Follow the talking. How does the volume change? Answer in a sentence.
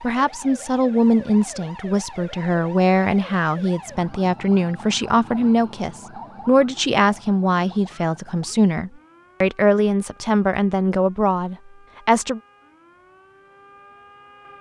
The loudness of the talking stays about the same.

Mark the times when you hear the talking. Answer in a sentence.
You can hear the talking from 0.0 to 12.4 s.